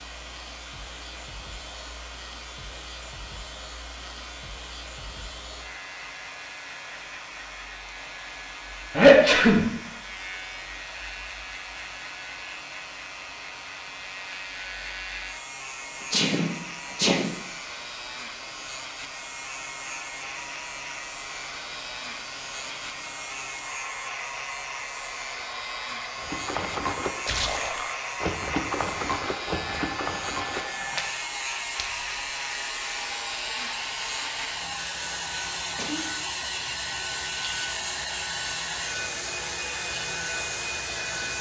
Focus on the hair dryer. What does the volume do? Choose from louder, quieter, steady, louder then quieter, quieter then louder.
louder.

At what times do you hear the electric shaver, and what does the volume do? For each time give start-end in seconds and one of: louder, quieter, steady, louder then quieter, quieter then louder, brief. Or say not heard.
0.0-41.3 louder.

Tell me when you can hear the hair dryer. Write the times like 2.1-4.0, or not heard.
0.0-41.3.